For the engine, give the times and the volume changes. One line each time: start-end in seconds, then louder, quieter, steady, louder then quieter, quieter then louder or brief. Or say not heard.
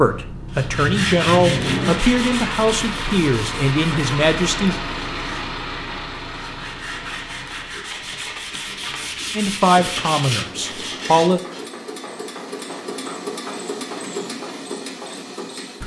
0.0-15.8 quieter then louder.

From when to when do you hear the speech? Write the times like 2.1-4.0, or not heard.
0.0-4.8, 9.3-11.4.